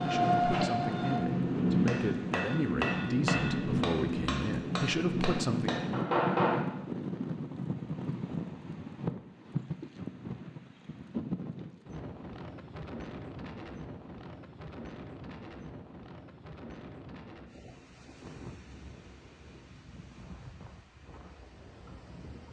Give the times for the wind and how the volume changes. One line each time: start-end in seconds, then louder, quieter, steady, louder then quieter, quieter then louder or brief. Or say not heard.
0.1-22.4 quieter.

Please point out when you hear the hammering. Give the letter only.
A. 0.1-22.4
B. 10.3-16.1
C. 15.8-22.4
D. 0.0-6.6
D.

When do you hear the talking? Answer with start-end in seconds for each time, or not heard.
0.0-5.8.